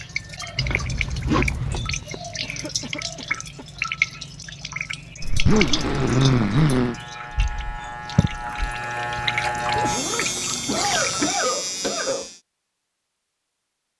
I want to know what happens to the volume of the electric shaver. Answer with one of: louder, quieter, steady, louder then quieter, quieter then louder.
louder.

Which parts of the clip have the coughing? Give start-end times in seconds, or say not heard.
2.4-3.6, 10.7-12.3.